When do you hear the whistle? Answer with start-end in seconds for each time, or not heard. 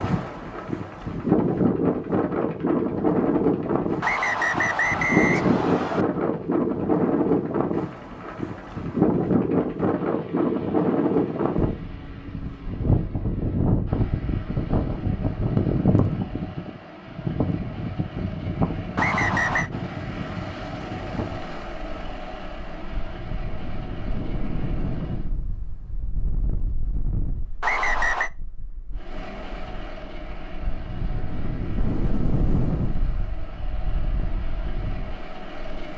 4.0-6.0, 18.9-19.7, 27.6-28.3.